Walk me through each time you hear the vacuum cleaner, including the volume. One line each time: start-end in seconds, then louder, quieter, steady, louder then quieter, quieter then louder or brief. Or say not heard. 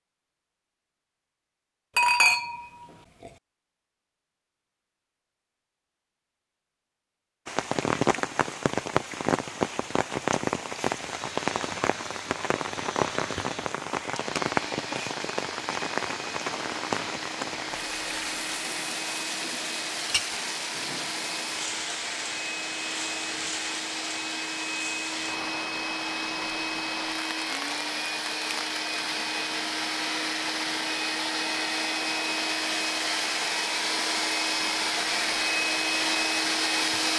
11.1-37.1 louder.